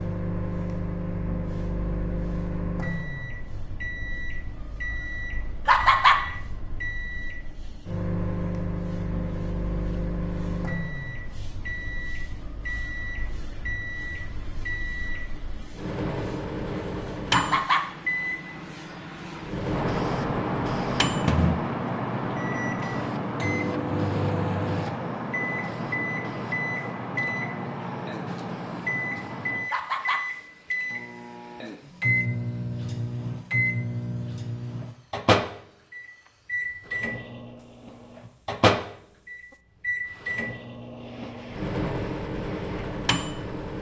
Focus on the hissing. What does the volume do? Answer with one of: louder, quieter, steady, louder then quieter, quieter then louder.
louder then quieter.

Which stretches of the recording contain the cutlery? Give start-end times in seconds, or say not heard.
not heard.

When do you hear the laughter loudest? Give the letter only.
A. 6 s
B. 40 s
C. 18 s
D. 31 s
A.